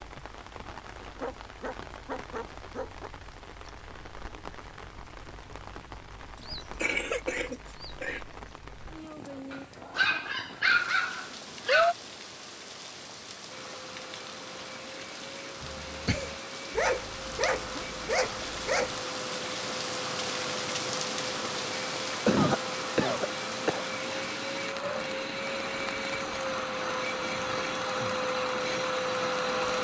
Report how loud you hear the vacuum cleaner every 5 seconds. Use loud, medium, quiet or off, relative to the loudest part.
off, off, quiet, medium, medium, loud.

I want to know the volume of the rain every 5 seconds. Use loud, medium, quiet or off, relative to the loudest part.
medium, medium, medium, loud, loud, medium.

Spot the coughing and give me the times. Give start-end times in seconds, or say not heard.
6.4-8.2, 15.6-16.4, 22.1-23.9.